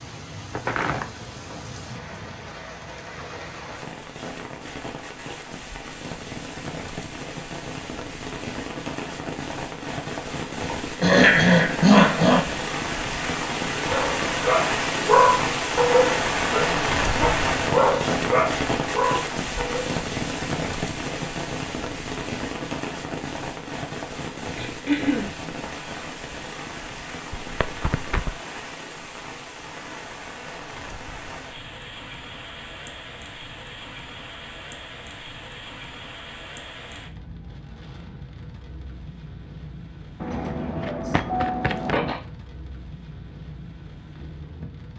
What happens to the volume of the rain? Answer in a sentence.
The volume of the rain goes up, then down.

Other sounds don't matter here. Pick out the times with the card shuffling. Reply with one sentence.
You can hear the card shuffling from 0.5 to 2.0 s, from 27.3 to 28.4 s and from 40.2 to 42.1 s.